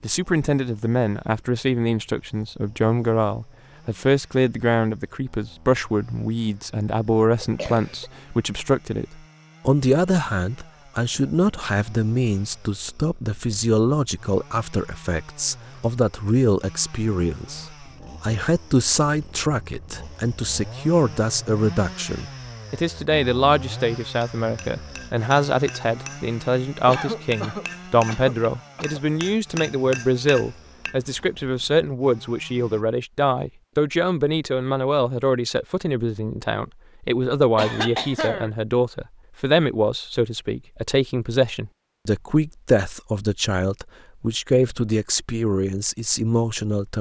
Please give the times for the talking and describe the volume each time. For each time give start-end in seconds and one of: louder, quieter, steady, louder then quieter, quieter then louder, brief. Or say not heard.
0.0-46.9 steady.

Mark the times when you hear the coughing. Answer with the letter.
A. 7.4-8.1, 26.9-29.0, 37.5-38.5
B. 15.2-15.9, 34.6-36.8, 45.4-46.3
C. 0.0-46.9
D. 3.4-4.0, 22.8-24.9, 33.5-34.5
A.